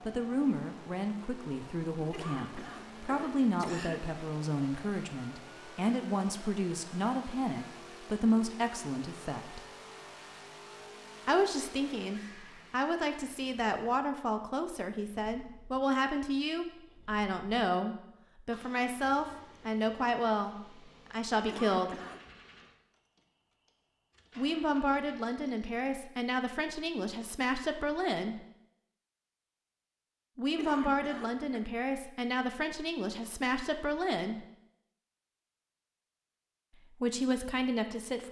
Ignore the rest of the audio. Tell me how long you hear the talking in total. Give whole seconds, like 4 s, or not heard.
30 s.